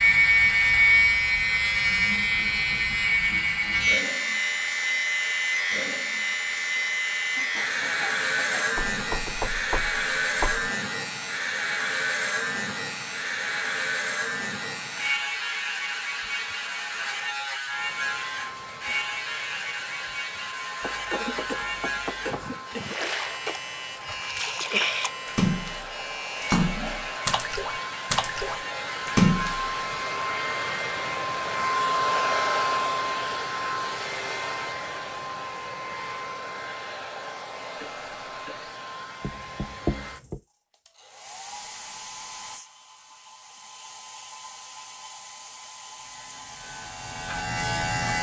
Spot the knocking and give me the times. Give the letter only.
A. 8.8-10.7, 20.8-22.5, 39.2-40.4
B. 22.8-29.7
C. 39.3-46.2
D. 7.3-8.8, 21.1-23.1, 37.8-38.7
A.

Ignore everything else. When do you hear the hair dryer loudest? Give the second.
32 s.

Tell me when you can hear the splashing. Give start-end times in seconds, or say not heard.
22.8-29.7.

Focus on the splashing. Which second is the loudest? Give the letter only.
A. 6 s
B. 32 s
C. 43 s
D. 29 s
D.